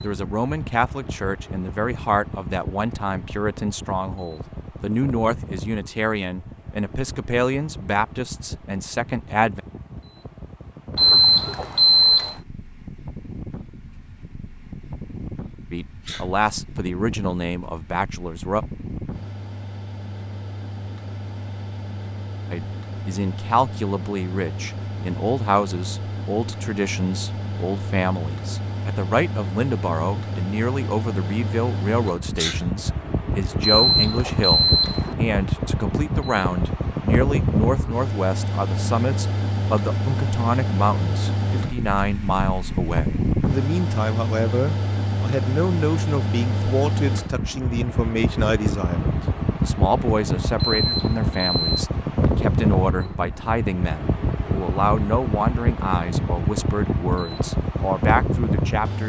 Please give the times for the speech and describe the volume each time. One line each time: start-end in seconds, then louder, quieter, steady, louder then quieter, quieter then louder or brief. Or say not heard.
0.0-9.6 steady
15.7-18.6 brief
22.5-59.0 steady.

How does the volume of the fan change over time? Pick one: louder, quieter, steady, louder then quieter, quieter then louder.
louder.